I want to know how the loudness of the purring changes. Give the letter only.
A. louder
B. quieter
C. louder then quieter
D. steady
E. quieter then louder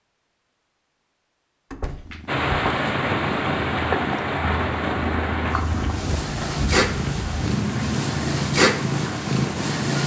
A.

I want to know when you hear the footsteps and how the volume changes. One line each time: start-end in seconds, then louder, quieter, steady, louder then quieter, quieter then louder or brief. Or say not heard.
not heard.